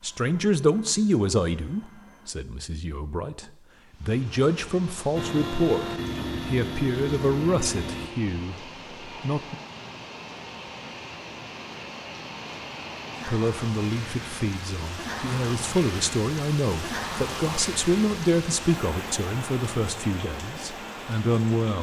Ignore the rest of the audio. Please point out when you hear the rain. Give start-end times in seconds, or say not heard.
3.8-21.7.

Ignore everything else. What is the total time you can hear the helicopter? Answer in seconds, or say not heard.
5 s.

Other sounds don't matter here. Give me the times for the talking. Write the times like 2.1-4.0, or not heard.
0.0-9.6, 13.2-21.7.